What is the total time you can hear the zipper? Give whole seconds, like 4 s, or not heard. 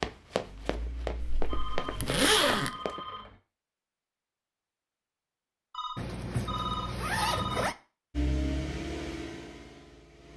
3 s.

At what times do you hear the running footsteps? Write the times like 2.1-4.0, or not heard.
0.0-3.0.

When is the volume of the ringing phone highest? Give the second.
7 s.